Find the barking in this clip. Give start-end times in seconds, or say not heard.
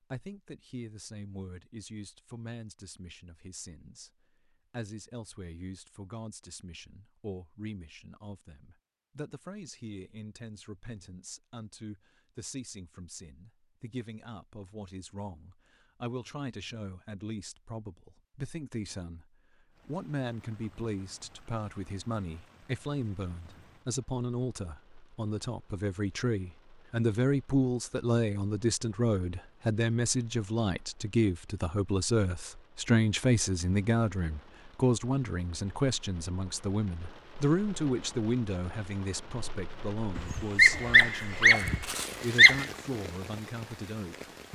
40.1-42.6.